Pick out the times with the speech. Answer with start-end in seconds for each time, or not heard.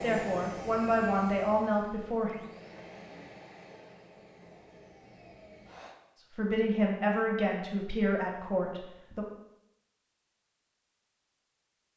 0.0-2.4, 6.3-9.2.